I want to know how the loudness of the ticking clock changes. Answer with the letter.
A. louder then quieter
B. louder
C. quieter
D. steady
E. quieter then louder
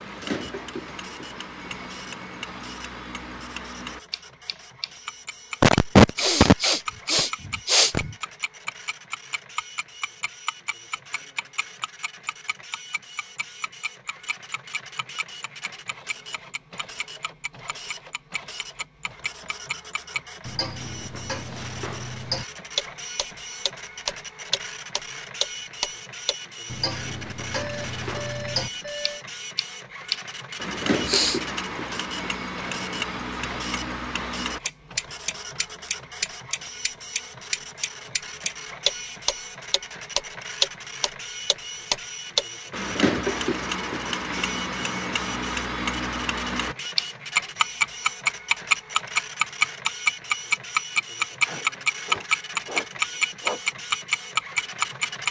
B.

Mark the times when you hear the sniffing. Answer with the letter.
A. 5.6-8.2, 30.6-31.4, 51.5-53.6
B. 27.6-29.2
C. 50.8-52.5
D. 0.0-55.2
A.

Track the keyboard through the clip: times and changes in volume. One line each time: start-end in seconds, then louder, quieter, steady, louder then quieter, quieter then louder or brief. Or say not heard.
not heard.